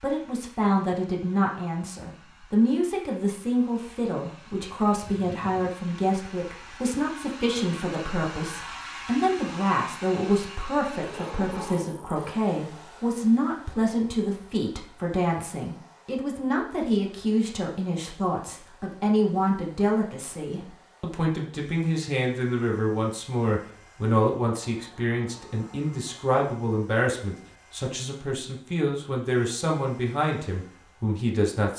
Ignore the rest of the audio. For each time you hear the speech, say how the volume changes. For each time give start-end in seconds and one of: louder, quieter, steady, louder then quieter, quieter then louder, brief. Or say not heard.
0.0-31.7 steady.